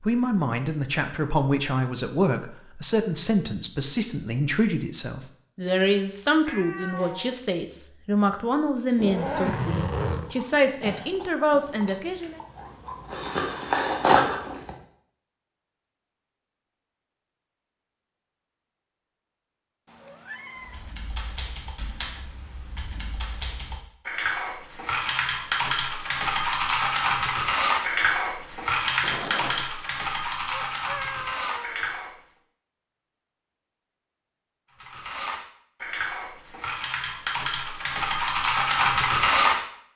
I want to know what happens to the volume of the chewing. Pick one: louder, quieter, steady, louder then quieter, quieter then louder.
quieter then louder.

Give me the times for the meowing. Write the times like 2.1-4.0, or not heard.
6.5-7.4, 19.9-20.9, 30.5-31.9.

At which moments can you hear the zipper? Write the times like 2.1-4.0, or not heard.
8.9-10.3, 29.0-29.6.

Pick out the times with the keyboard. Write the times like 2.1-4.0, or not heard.
20.6-32.1, 34.8-39.9.